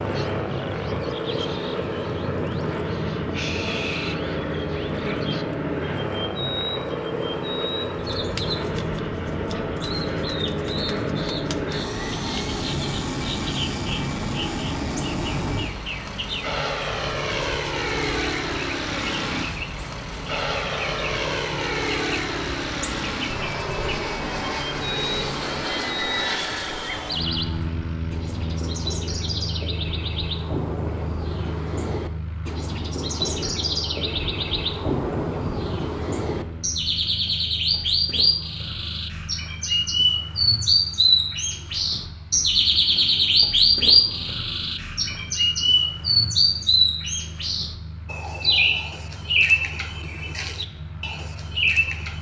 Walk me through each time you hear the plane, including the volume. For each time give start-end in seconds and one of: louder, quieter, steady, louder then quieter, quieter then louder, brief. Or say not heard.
0.0-52.1 quieter.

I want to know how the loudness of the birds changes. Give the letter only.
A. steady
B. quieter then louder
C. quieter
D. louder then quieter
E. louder
E.